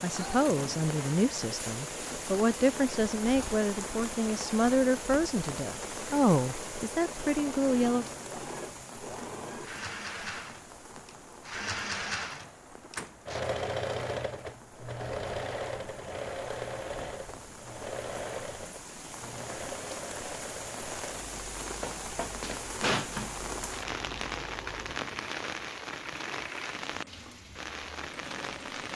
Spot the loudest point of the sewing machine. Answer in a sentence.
The volume of the sewing machine peaks at 14 seconds.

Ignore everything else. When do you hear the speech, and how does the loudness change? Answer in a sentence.
You can hear the speech from 0.0 to 8.1 s, at a steady volume.